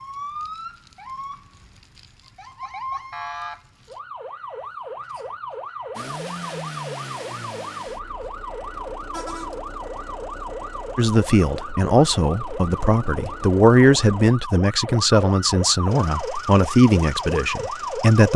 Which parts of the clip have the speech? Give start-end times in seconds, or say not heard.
10.9-18.3.